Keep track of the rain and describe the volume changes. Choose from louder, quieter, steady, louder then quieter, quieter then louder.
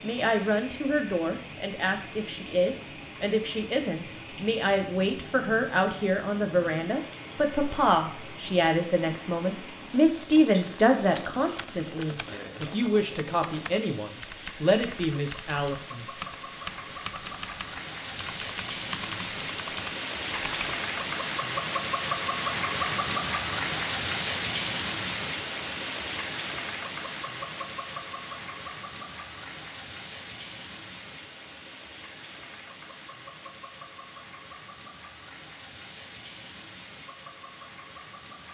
louder then quieter.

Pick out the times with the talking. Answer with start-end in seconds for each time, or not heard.
0.0-16.1.